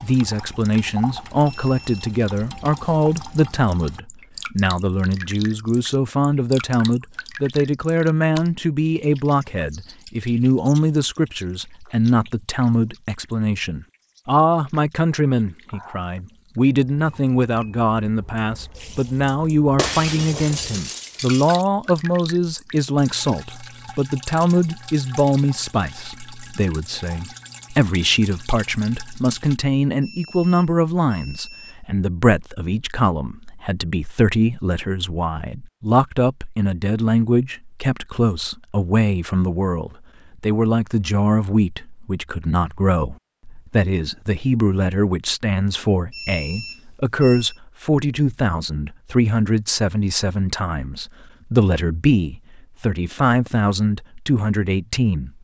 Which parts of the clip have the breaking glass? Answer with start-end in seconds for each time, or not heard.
19.8-21.6.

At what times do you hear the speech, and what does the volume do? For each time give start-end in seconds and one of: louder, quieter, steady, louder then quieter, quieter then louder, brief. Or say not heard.
0.0-55.3 steady.